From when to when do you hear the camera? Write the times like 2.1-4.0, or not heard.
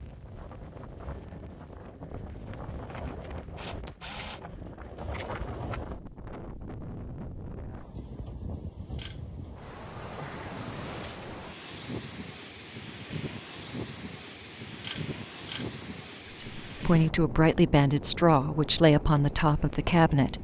3.5-4.4, 8.9-9.3, 14.8-15.8.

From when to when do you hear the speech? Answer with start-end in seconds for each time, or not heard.
16.4-20.3.